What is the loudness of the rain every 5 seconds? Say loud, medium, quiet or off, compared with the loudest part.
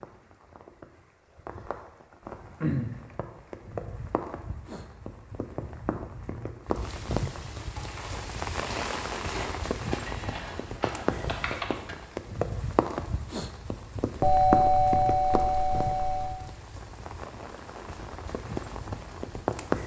medium, loud, loud, loud.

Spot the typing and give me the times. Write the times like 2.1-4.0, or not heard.
7.6-12.1.